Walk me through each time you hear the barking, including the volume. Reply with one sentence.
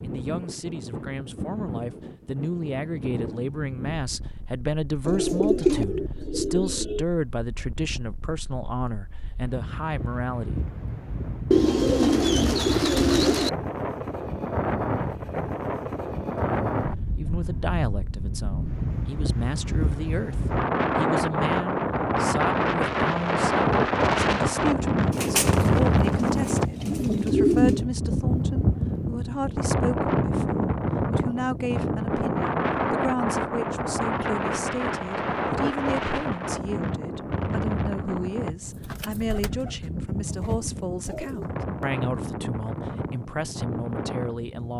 You can't hear the barking here.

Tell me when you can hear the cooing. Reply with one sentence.
You can hear the cooing from 5.0 to 7.0 s, from 11.5 to 13.5 s, from 25.1 to 27.9 s and from 38.9 to 41.5 s.